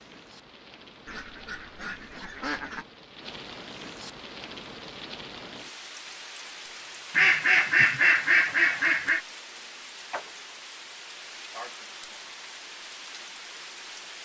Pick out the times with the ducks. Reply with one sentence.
You can hear the ducks from 1.1 to 2.9 s and from 7.1 to 9.2 s.